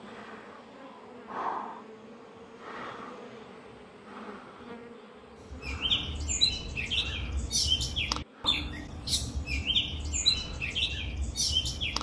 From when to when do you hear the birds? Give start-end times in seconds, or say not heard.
5.5-11.9.